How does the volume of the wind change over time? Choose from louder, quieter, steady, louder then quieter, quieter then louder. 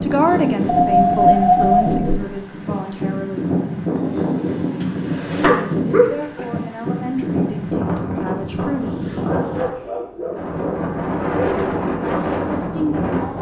steady.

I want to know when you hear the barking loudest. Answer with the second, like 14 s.
1 s.